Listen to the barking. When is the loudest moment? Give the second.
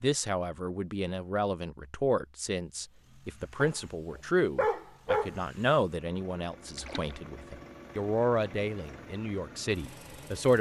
5 s.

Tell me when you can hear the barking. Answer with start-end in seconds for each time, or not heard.
3.6-5.3.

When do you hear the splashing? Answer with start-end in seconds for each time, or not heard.
6.8-7.2.